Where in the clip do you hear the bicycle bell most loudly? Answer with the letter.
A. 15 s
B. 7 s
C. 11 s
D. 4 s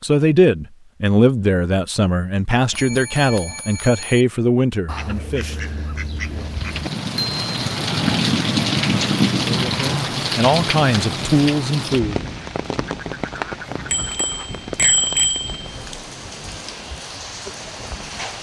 A.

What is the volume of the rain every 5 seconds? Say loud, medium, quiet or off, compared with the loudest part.
off, loud, medium, quiet.